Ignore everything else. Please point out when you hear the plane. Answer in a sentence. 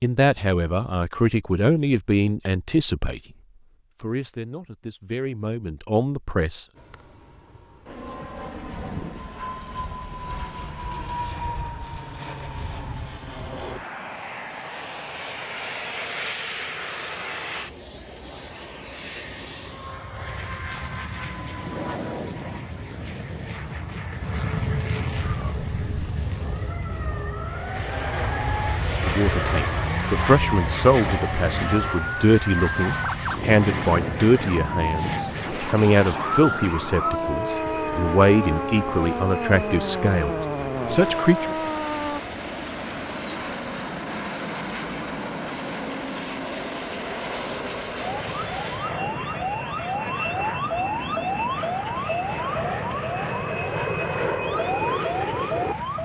You can hear the plane from 6.8 to 55.8 s.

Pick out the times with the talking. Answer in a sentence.
You can hear the talking from 0.0 to 3.2 s, from 4.0 to 6.7 s and from 29.0 to 41.5 s.